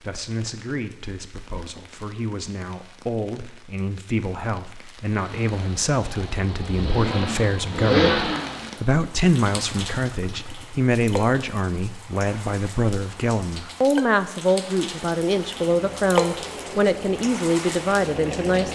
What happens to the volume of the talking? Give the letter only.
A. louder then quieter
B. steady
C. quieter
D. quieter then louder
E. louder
E.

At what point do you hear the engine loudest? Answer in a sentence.
The loudest moment of the engine is at 8 seconds.